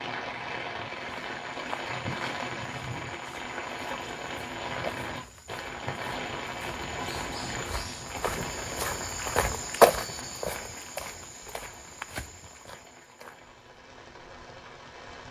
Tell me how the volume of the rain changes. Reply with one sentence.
The loudness of the rain goes down.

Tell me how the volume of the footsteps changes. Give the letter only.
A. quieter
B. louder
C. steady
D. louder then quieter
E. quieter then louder
D.